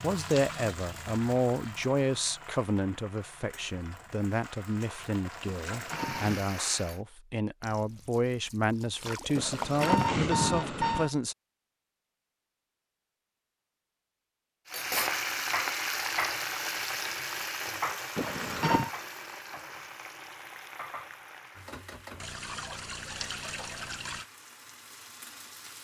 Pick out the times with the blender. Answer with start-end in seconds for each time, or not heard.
not heard.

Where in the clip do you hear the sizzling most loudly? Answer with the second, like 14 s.
15 s.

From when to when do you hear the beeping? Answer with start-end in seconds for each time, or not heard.
5.7-6.5, 9.3-11.1, 18.1-18.9.